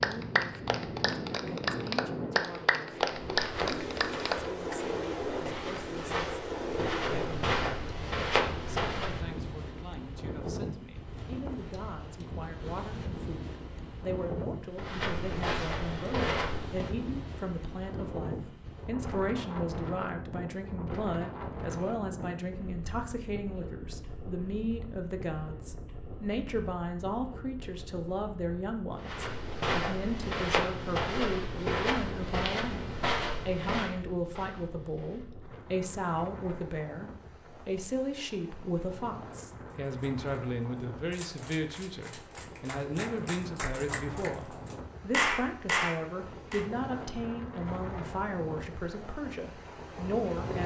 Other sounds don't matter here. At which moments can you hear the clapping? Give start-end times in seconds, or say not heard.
0.0-4.8, 39.7-40.4, 41.1-46.6.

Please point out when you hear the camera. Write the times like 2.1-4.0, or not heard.
not heard.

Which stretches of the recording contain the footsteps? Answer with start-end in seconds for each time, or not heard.
3.1-9.3, 14.7-16.9, 28.9-35.3.